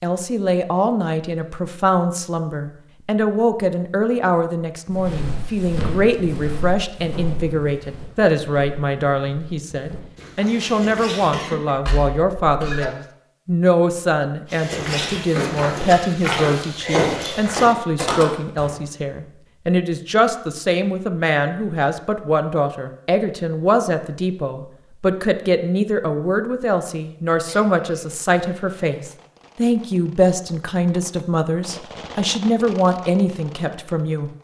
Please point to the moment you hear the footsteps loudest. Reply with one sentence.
The loudest moment of the footsteps is at 17 seconds.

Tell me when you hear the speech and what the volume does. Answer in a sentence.
The speech can be heard from 0.0 to 34.3 s, at a steady volume.